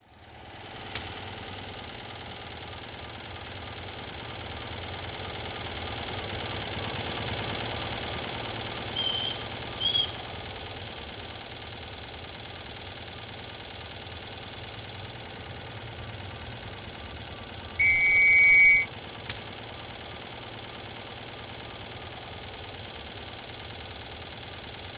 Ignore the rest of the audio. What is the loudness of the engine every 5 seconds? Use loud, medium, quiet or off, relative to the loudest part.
medium, loud, medium, medium, medium.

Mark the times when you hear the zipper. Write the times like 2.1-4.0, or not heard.
not heard.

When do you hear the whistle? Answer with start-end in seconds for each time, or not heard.
8.9-10.2, 17.8-18.9.